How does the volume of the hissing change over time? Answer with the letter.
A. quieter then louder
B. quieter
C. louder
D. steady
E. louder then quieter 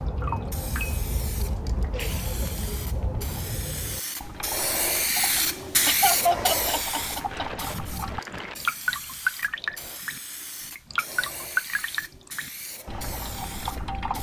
E.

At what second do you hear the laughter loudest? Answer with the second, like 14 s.
6 s.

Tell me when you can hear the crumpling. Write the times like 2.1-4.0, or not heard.
6.8-8.6.